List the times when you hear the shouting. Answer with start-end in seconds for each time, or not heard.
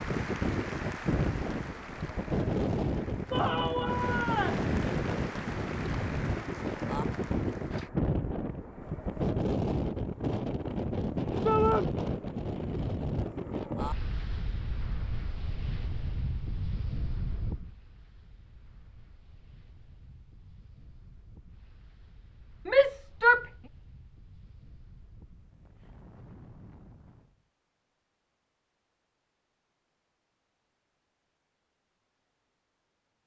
3.3-4.7, 11.4-11.8, 22.6-23.4.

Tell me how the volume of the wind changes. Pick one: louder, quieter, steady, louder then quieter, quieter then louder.
quieter.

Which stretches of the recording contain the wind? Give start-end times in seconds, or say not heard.
0.0-27.4.